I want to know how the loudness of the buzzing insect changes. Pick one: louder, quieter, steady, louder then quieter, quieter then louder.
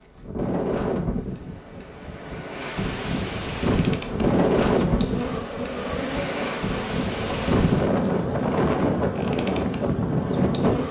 steady.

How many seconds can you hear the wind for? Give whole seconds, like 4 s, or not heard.
11 s.